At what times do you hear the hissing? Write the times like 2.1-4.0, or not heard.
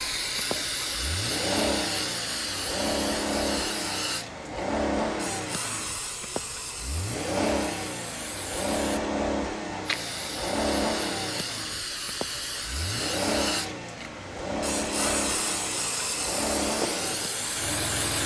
0.0-18.2.